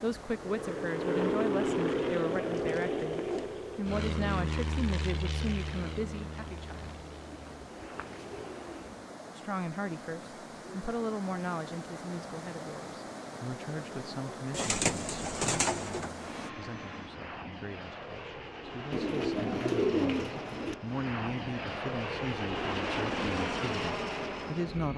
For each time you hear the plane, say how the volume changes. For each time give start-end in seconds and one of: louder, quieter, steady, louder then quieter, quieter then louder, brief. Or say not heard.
0.1-8.9 quieter
16.1-24.9 louder.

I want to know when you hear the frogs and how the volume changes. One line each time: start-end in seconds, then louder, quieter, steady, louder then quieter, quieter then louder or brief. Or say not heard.
not heard.